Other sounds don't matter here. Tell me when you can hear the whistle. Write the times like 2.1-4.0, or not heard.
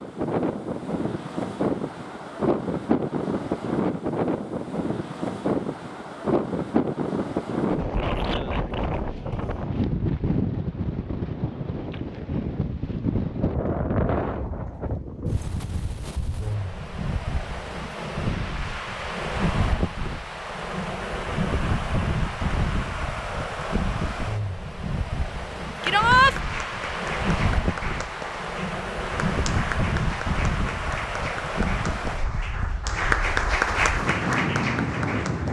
not heard.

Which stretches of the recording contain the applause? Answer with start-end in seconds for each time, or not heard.
25.8-35.4.